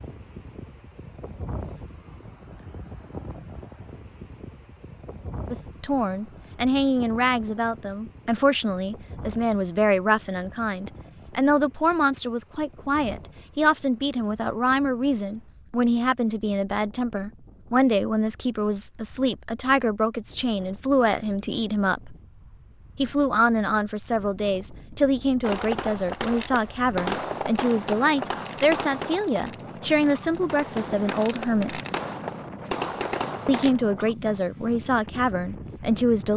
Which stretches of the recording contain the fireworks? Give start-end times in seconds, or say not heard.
25.4-33.8.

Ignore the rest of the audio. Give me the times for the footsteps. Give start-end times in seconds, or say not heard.
not heard.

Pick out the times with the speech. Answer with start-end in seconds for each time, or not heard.
5.5-22.1, 22.9-31.8, 33.5-36.3.